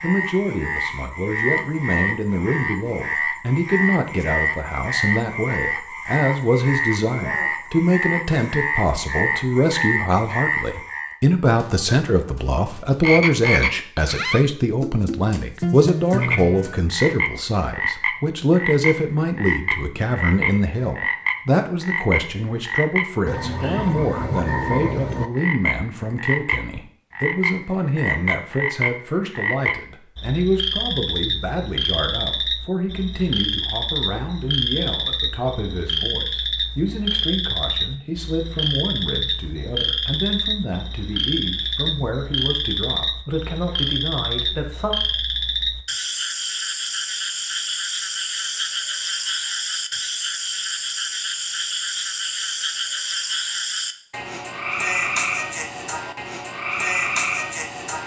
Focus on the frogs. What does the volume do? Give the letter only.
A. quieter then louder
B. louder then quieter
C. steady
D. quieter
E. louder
C.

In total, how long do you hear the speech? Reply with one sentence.
You can hear the speech for 45 seconds altogether.